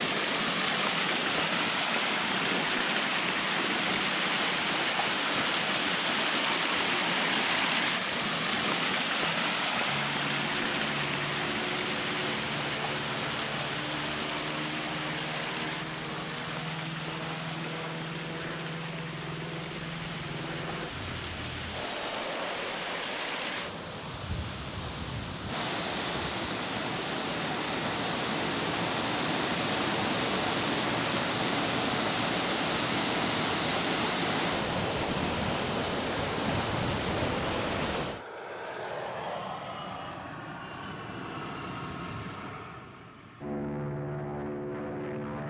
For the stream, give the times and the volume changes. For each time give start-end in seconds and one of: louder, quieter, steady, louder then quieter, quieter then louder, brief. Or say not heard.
0.0-38.2 quieter then louder.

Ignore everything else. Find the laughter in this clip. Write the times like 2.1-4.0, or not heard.
not heard.